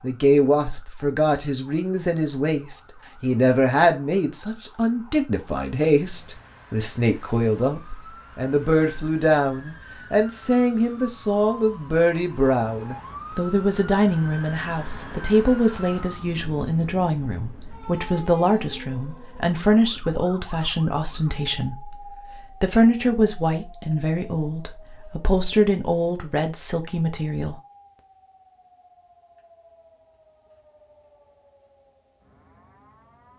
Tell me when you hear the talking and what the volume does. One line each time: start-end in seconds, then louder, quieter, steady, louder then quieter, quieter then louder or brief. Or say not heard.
0.0-27.6 steady.